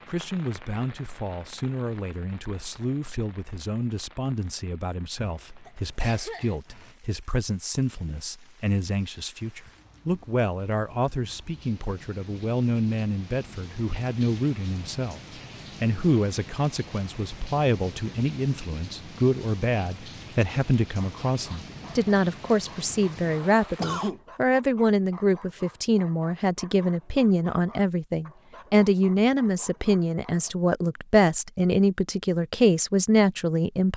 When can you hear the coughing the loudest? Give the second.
24 s.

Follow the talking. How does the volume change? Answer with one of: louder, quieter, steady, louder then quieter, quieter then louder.
louder.